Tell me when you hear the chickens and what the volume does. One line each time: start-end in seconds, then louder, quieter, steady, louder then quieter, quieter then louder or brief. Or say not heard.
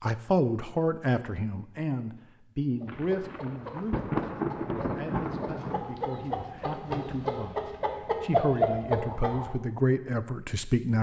2.8-9.6 louder.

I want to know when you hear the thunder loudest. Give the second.
4 s.